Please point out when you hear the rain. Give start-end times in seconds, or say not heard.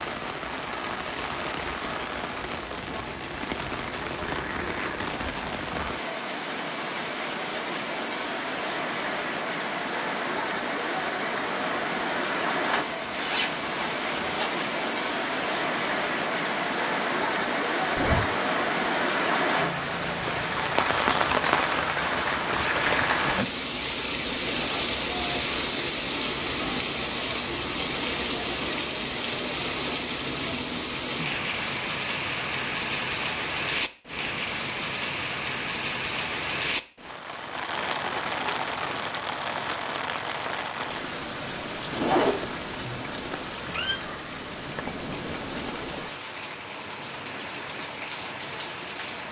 0.0-49.2.